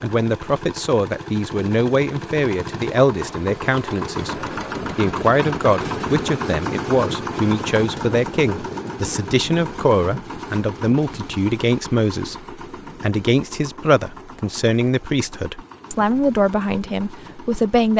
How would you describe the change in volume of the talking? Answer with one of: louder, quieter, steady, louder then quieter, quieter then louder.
steady.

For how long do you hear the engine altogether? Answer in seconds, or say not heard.
18 s.